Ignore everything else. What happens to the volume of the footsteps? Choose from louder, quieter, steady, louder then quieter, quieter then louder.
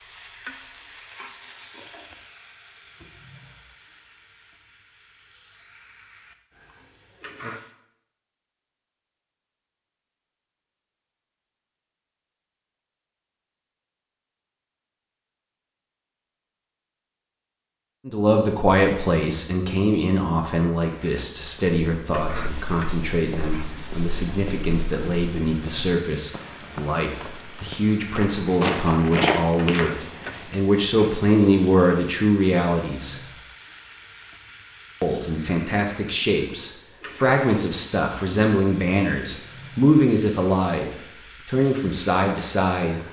louder.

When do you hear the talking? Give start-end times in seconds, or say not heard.
18.1-33.2, 35.0-43.0.